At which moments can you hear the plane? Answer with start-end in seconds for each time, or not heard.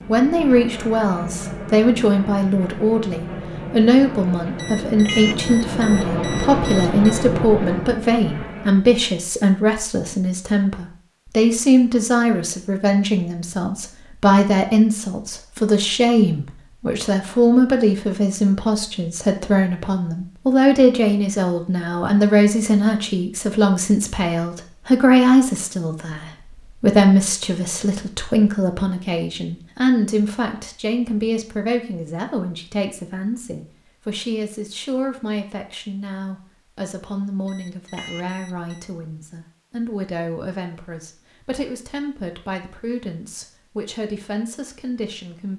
0.0-8.8.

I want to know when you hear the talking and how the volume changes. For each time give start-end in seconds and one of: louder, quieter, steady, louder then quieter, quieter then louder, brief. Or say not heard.
0.1-45.5 quieter.